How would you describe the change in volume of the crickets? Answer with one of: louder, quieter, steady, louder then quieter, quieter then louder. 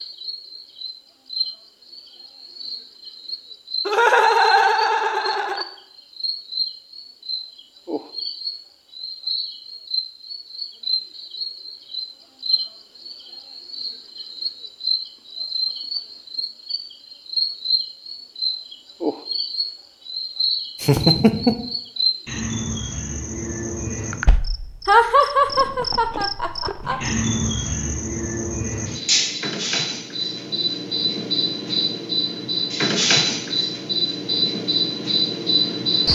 louder.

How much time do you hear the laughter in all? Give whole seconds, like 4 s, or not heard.
5 s.